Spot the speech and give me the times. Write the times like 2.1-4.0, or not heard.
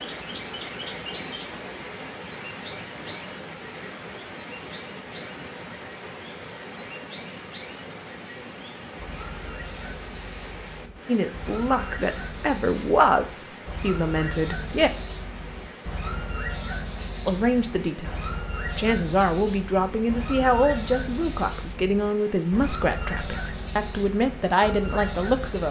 11.1-14.9, 17.2-25.6.